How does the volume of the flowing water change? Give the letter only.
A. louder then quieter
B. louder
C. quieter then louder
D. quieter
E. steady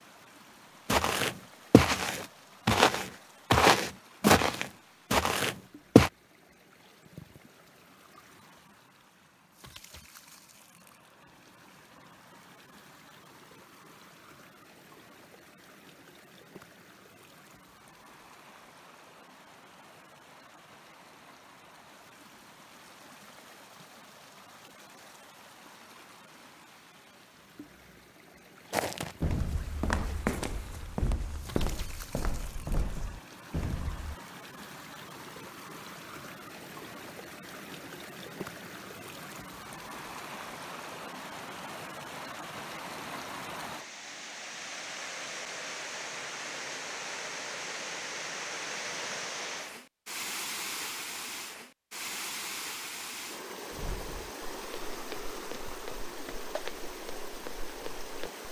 B.